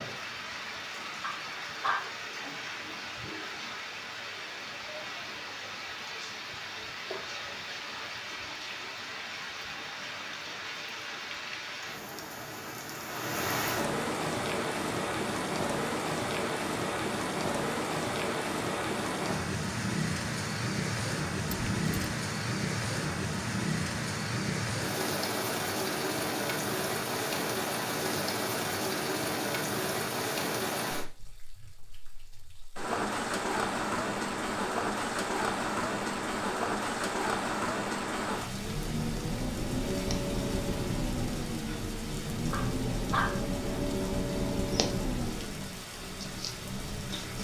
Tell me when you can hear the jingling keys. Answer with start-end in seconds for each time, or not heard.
21.4-22.1.